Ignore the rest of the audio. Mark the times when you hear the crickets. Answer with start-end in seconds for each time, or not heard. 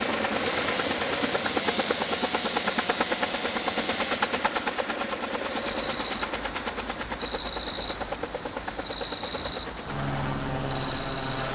5.4-11.5.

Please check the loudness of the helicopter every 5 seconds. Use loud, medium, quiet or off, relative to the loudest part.
loud, medium, loud.